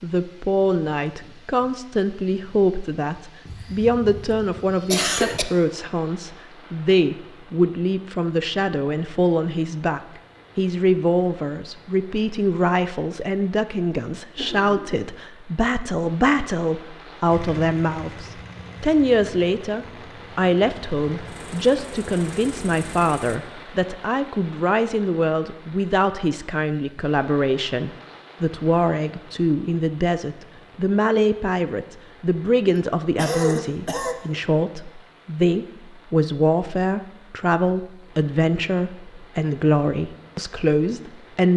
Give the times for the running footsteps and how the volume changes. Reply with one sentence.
You can't hear the running footsteps here.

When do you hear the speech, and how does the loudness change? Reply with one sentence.
The speech can be heard from 0.0 to 41.5 s, at a steady volume.